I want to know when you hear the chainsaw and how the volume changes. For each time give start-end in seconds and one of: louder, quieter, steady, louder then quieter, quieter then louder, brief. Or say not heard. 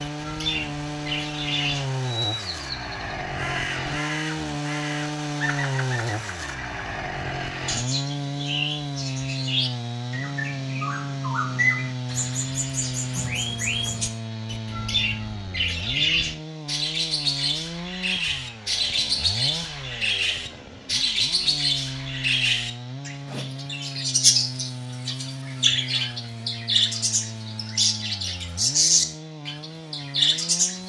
0.0-30.8 quieter.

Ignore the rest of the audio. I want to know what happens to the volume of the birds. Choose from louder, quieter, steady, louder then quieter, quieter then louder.
louder.